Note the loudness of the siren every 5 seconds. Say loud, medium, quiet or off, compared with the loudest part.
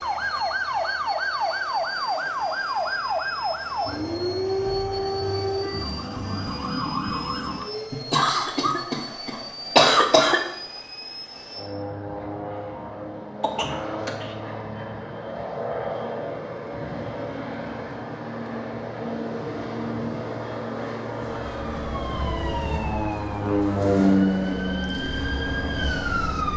loud, loud, off, off, medium, loud.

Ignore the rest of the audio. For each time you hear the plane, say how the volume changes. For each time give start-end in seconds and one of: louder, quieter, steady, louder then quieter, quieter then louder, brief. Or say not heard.
0.0-26.5 louder.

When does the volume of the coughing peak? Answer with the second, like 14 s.
10 s.